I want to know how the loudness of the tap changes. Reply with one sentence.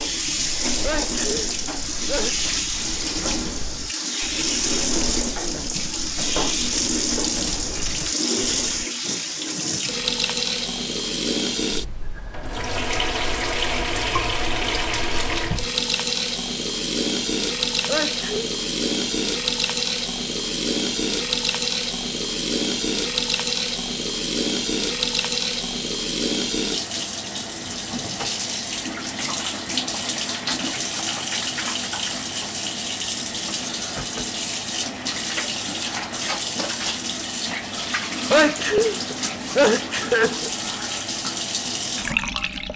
The loudness of the tap stays about the same.